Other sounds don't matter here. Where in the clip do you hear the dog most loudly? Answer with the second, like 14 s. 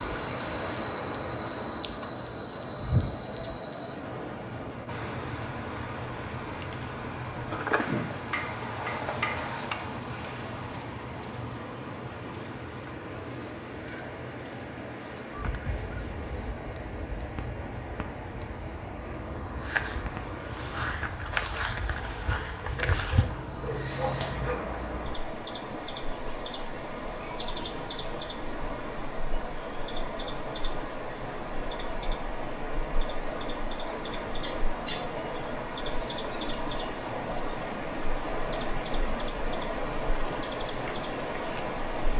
24 s.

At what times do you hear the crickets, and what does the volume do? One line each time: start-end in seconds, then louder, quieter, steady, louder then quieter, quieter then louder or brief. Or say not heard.
0.0-42.1 quieter.